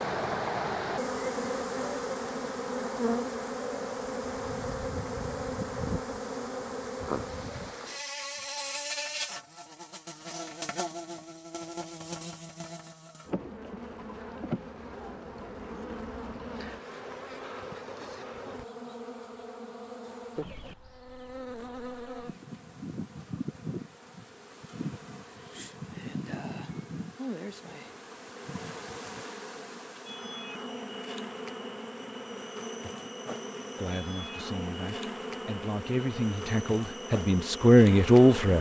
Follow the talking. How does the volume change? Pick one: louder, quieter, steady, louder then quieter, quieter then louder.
louder.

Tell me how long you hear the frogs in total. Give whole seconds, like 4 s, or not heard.
not heard.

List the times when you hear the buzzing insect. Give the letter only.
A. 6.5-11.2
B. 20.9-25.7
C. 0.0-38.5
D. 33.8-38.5
C.